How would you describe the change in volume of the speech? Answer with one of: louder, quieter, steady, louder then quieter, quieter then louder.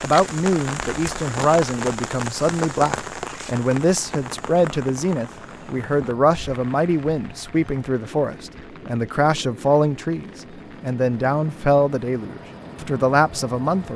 steady.